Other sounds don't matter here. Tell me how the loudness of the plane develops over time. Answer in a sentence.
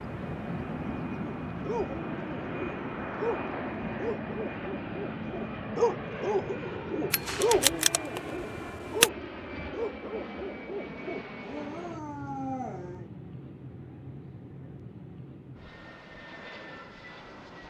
The loudness of the plane goes down.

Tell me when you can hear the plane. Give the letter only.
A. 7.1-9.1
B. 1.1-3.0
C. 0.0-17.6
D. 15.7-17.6
C.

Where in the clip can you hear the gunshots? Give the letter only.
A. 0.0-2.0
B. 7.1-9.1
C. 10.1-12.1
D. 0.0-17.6
B.